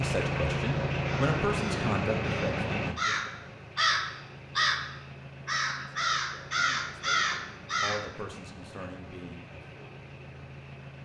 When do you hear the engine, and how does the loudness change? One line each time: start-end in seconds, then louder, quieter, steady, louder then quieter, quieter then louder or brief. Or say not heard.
0.0-11.0 quieter.